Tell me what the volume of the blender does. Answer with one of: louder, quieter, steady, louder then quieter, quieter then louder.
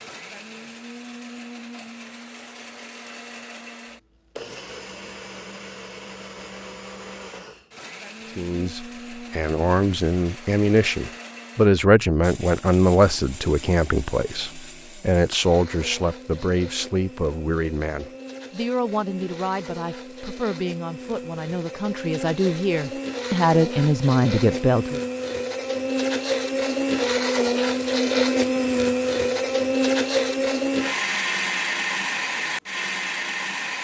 louder.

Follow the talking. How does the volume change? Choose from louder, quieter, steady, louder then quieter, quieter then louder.
quieter then louder.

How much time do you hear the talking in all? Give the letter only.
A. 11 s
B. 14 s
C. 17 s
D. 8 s
C.